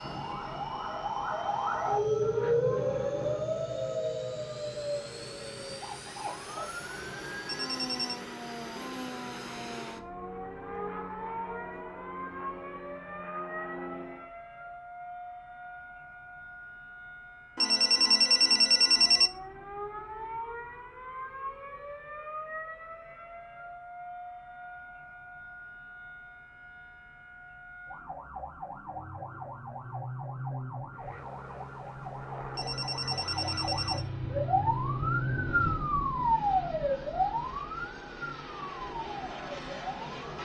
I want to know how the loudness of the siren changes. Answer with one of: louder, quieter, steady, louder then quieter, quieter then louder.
quieter then louder.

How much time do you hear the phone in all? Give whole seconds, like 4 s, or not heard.
4 s.